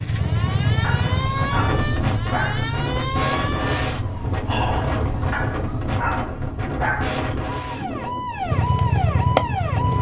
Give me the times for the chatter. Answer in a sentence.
You can't hear the chatter here.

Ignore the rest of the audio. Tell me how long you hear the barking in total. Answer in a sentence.
You can hear the barking for 4 seconds altogether.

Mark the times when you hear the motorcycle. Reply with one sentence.
The motorcycle can be heard from 0.0 to 2.2 s and from 8.4 to 9.9 s.